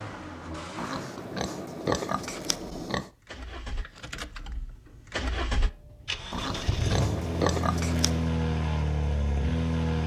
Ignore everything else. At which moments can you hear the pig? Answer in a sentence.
You can hear the pig from 0.8 to 3.1 s and from 6.3 to 8.3 s.